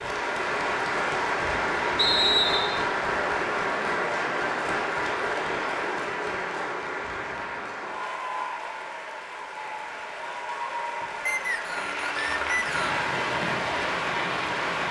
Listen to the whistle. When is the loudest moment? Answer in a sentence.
The loudest moment of the whistle is at 2 seconds.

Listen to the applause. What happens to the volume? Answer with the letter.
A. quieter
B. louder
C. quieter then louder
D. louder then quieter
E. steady
C.